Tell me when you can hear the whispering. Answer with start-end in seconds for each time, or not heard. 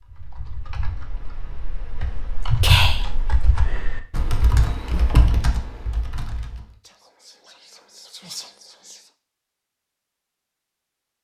2.6-3.2, 6.8-9.1.